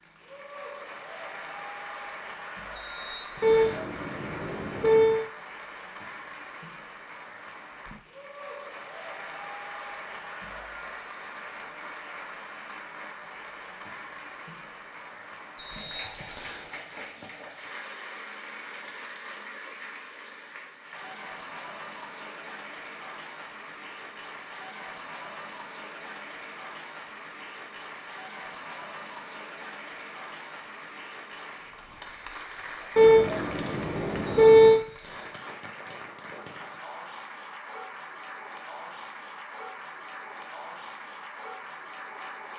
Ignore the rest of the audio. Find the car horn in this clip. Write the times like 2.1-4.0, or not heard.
3.4-5.2, 33.0-34.8.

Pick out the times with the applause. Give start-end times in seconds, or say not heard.
0.0-42.5.